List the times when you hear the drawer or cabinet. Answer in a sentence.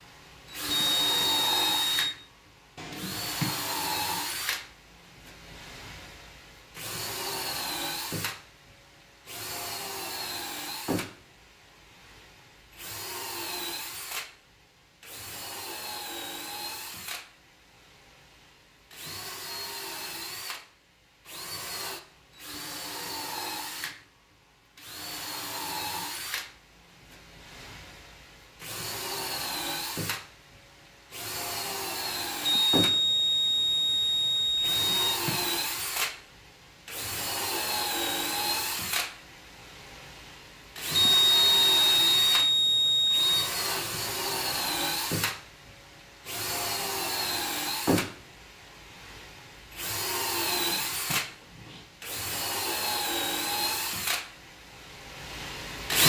You can hear the drawer or cabinet from 2.8 to 3.5 s, from 34.6 to 35.6 s and from 50.5 to 51.9 s.